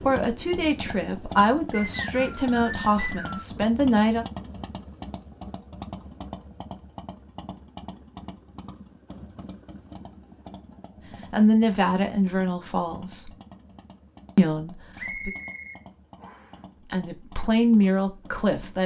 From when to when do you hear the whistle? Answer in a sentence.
The whistle can be heard from 1.7 to 3.5 s and from 14.9 to 16.6 s.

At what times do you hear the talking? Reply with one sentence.
The talking can be heard from 0.0 to 4.2 s, from 11.3 to 13.3 s, from 14.3 to 15.3 s and from 16.9 to 18.8 s.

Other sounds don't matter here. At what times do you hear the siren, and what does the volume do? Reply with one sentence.
You can't hear the siren here.